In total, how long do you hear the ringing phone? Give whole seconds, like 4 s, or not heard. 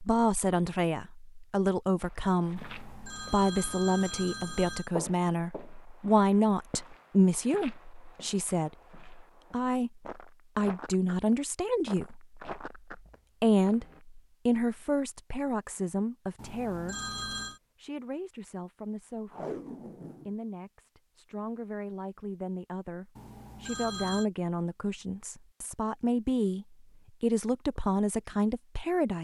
5 s.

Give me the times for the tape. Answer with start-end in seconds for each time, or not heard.
19.3-20.4.